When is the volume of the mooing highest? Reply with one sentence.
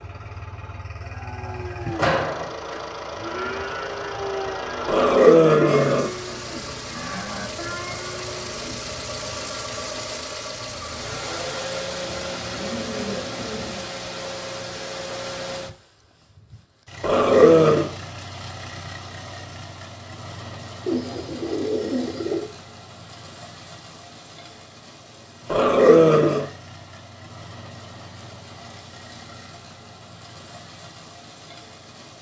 The volume of the mooing peaks at 2 seconds.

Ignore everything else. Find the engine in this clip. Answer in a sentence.
The engine can be heard from 0.0 to 32.1 s.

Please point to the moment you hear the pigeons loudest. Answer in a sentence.
The volume of the pigeons peaks at 22 seconds.